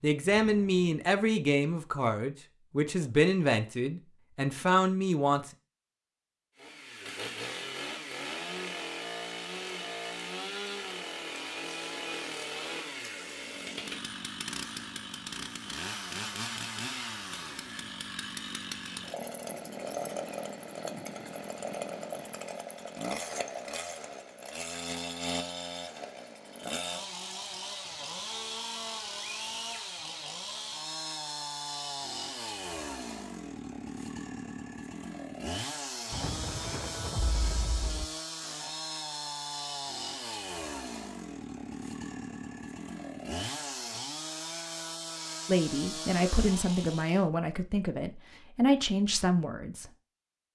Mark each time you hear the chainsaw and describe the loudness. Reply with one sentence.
The chainsaw can be heard from 6.5 to 47.2 s, at a steady volume.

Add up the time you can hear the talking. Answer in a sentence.
The talking can be heard for 10 seconds in total.